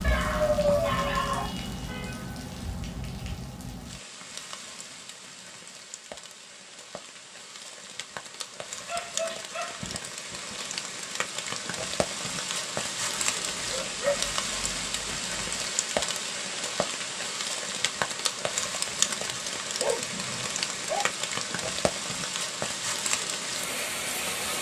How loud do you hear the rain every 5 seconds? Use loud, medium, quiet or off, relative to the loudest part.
medium, medium, loud, loud, loud.